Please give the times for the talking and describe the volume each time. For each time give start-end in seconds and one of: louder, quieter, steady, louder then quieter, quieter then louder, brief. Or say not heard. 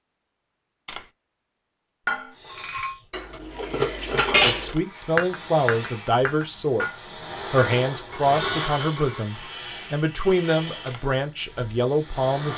4.2-12.5 steady.